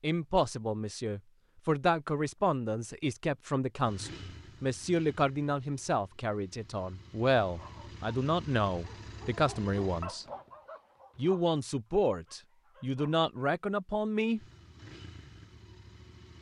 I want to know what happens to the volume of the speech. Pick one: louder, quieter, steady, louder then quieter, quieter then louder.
steady.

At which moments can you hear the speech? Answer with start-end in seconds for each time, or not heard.
0.0-10.2, 11.2-14.4.